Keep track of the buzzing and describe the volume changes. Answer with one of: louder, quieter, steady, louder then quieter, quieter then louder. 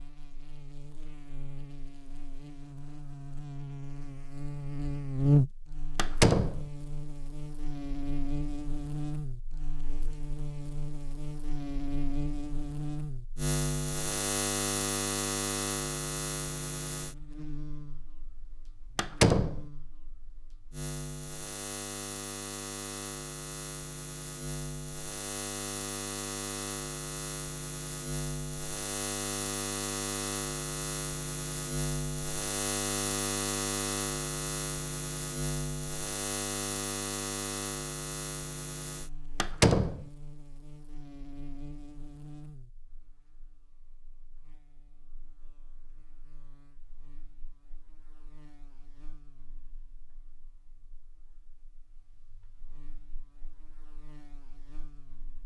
quieter.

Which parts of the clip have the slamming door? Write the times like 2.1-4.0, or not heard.
6.0-6.6, 18.9-19.6, 39.4-40.0.